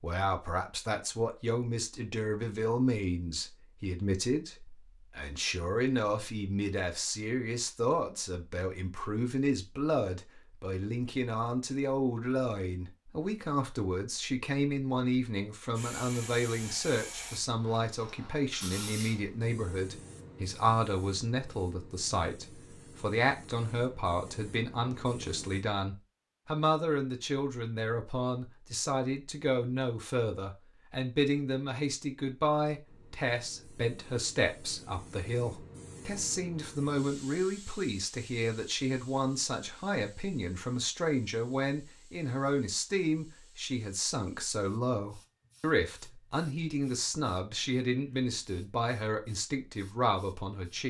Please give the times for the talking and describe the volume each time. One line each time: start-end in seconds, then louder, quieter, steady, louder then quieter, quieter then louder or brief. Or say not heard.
0.0-50.8 steady.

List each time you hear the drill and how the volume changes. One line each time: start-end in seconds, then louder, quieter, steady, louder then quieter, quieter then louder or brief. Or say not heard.
not heard.